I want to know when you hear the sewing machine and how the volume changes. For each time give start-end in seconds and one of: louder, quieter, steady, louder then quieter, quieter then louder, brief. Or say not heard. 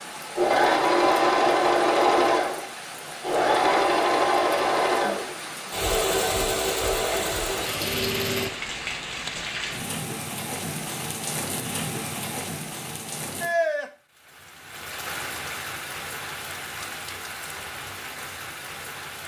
0.0-8.5 quieter.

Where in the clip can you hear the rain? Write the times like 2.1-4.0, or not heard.
0.0-19.2.